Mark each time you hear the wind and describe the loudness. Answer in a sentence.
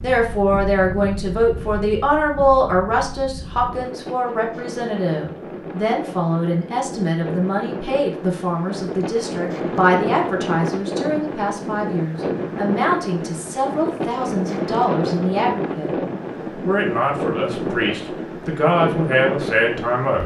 You can hear the wind from 0.0 to 20.2 s, getting louder.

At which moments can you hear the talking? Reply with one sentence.
The talking can be heard from 0.0 to 15.9 s and from 16.6 to 20.2 s.